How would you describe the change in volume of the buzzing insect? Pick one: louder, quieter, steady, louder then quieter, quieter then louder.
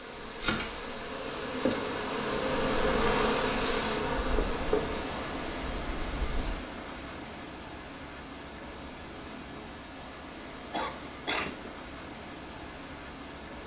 louder then quieter.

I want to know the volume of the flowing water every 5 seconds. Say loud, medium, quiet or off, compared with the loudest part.
loud, loud, medium.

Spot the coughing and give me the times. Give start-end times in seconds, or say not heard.
10.7-11.7.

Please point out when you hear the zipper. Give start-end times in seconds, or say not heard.
6.2-6.6.